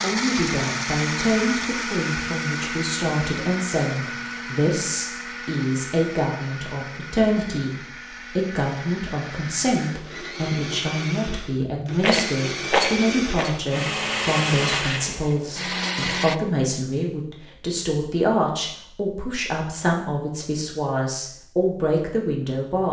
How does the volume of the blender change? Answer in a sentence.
The loudness of the blender goes down, then up.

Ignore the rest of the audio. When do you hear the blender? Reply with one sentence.
You can hear the blender from 0.0 to 16.4 s.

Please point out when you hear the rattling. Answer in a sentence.
You can hear the rattling from 12.0 to 13.6 s.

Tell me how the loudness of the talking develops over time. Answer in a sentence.
The loudness of the talking stays about the same.